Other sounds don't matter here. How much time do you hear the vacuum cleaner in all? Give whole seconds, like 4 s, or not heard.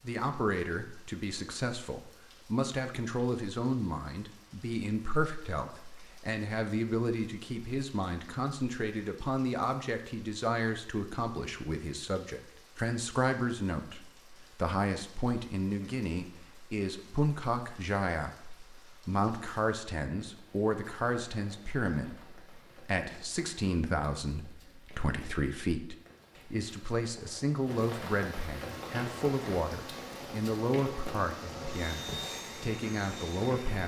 5 s.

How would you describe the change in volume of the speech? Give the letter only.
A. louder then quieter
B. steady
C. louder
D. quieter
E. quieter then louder
B.